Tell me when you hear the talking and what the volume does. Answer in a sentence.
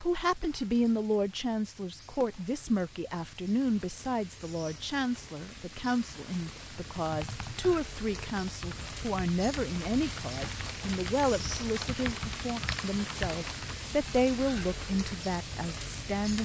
You can hear the talking from 0.0 to 16.4 s, at a steady volume.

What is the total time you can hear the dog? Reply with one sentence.
You can't hear the dog here.